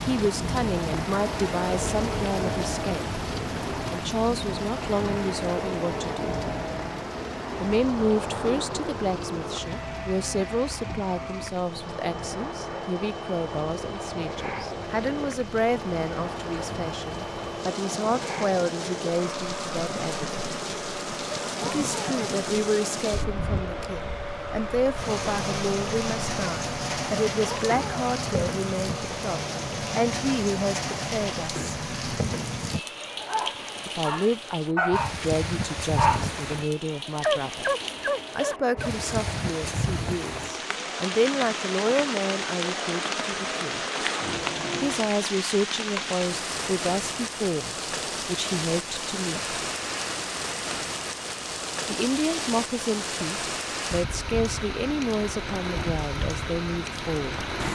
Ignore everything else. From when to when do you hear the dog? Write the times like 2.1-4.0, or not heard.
33.1-38.9.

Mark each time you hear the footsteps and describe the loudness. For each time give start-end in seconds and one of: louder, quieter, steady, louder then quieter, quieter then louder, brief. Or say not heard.
not heard.